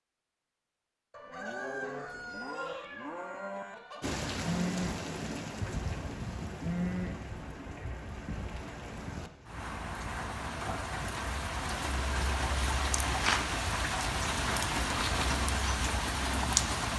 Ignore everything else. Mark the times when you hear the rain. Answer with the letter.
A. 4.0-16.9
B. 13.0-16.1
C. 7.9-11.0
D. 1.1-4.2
A.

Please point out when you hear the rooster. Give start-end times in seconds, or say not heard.
1.1-4.2.